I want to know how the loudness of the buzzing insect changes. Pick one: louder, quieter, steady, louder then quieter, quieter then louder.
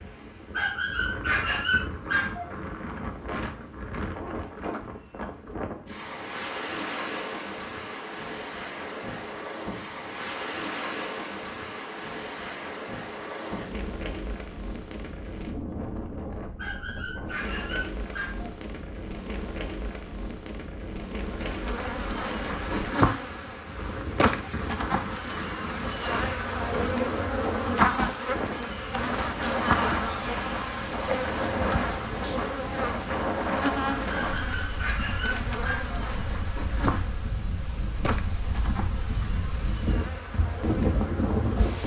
quieter.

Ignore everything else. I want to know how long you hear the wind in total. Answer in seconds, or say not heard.
42 s.